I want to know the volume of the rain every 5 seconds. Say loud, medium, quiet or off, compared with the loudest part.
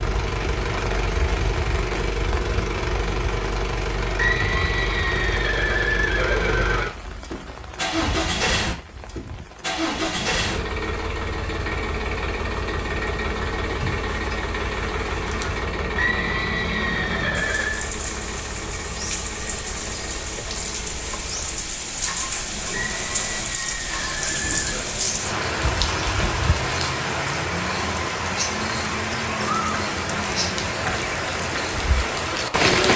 medium, quiet, quiet, medium, medium, loud, loud.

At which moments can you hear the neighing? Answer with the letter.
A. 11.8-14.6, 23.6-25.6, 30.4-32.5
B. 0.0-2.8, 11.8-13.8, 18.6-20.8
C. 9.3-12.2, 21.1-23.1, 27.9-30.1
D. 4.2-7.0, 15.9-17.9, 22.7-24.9
D.